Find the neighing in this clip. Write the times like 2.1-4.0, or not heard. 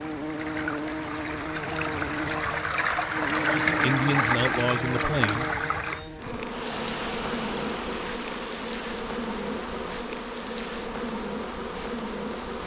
not heard.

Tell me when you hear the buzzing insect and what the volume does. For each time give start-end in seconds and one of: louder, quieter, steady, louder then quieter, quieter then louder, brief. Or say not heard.
0.0-12.6 steady.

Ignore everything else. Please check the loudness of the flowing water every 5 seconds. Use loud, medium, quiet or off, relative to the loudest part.
loud, medium, quiet.